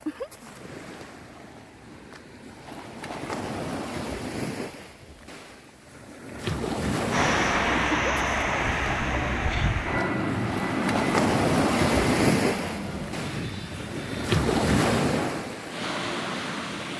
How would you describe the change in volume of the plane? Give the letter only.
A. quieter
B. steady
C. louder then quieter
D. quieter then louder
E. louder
A.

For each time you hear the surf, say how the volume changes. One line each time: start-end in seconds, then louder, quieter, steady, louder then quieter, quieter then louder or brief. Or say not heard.
0.0-16.9 louder.